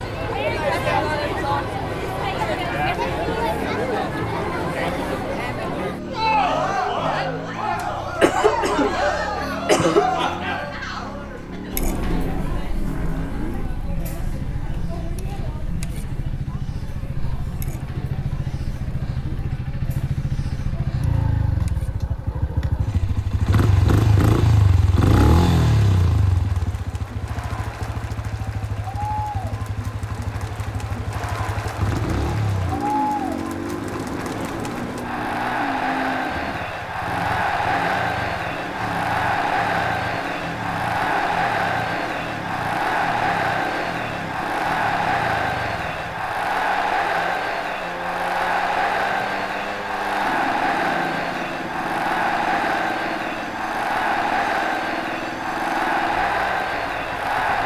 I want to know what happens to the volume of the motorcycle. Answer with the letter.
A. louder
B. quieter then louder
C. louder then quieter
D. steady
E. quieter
C.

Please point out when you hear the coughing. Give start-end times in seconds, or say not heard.
8.2-10.2.